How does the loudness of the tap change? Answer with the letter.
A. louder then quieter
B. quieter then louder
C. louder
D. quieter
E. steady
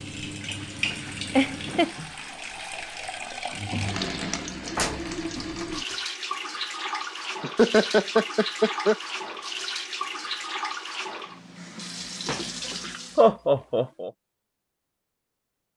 E.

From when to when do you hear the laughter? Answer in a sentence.
The laughter can be heard from 1.4 to 1.9 s, from 7.4 to 8.9 s and from 13.2 to 14.1 s.